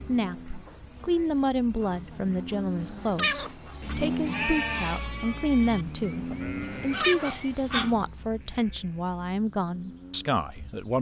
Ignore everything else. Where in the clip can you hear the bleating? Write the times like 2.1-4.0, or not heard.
3.8-9.2.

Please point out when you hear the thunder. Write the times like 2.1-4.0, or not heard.
not heard.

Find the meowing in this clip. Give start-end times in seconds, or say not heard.
2.8-4.0, 6.8-7.9.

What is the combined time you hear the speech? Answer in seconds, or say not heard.
11 s.